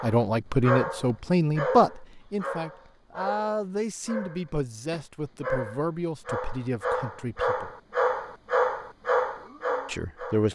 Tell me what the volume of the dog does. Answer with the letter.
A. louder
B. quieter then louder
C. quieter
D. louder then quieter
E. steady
B.